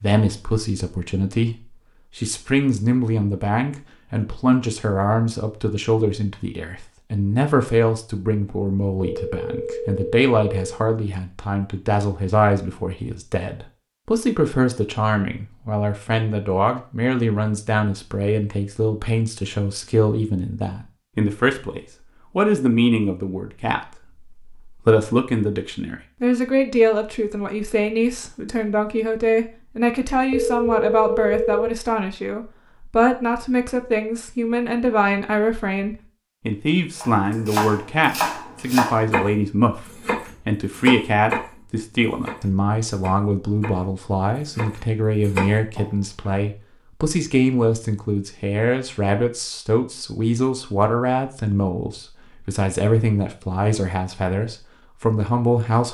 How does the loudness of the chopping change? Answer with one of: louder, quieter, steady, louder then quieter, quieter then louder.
quieter then louder.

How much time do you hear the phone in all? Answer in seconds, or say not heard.
3 s.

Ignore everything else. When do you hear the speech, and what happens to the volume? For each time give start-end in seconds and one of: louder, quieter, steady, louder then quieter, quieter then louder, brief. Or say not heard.
0.0-55.8 steady.